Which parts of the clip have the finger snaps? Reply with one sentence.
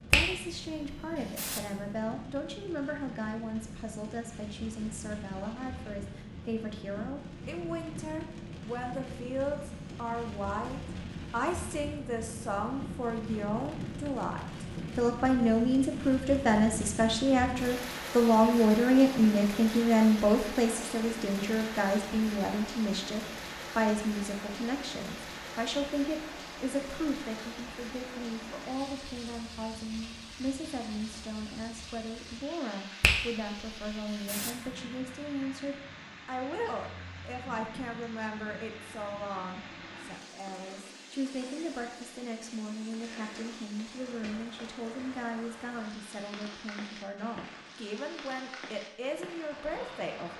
You can hear the finger snaps from 0.1 to 1.6 s and from 33.0 to 34.5 s.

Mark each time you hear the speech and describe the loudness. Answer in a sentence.
The speech can be heard from 0.1 to 50.3 s, getting louder then quieter.